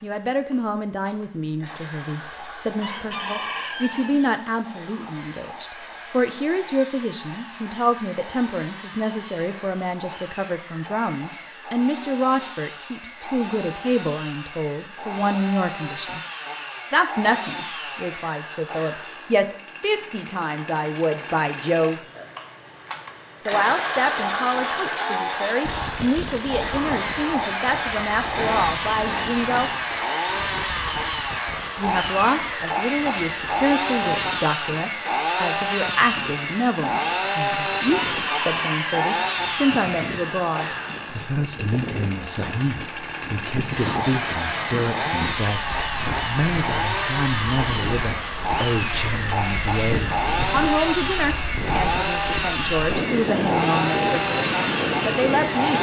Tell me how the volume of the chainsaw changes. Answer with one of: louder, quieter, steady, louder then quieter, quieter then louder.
louder.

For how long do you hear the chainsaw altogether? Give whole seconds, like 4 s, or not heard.
56 s.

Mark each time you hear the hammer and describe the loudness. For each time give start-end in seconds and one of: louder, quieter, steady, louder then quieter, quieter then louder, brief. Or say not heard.
not heard.